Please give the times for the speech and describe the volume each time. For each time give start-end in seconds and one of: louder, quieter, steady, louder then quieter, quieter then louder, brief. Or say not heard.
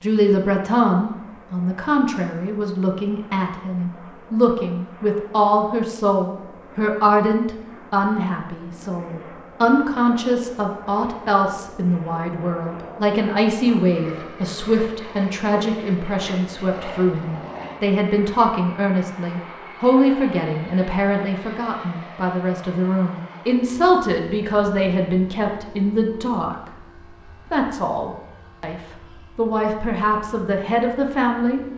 0.0-26.7 steady
27.5-31.6 quieter then louder.